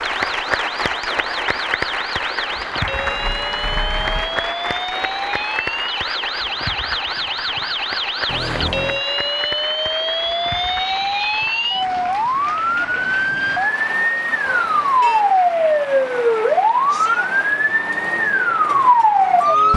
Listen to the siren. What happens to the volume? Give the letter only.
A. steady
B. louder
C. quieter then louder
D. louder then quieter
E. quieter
B.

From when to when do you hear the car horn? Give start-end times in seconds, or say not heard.
2.9-4.5, 8.2-9.0, 14.4-15.2.